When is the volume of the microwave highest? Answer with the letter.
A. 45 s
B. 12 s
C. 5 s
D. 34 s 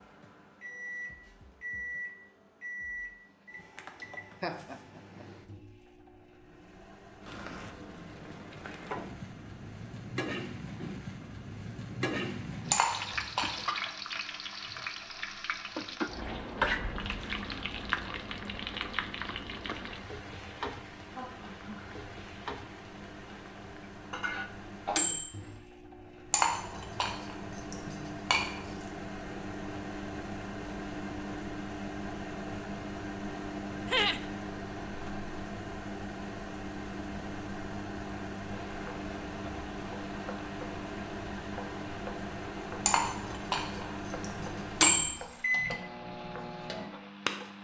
A.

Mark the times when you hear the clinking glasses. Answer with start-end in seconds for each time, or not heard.
12.7-13.7, 26.3-28.6, 42.9-45.0.